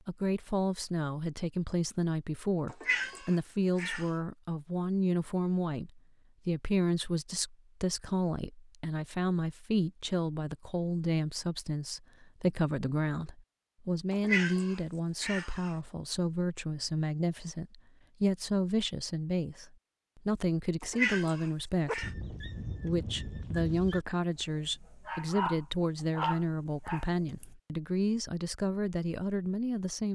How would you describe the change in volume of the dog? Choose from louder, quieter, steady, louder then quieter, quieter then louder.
louder.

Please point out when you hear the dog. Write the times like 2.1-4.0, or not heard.
21.9-27.5.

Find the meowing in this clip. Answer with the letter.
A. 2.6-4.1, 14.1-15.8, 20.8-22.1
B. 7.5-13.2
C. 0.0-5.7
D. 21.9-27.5
A.